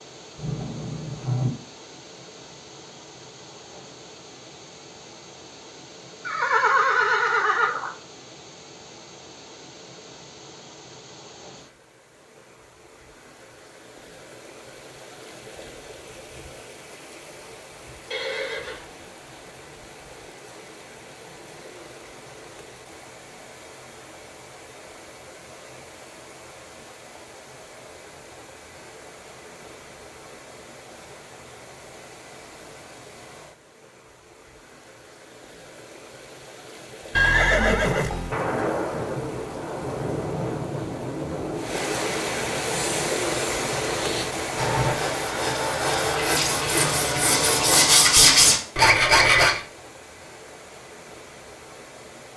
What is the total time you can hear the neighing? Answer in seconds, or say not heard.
4 s.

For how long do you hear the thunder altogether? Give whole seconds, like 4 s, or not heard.
5 s.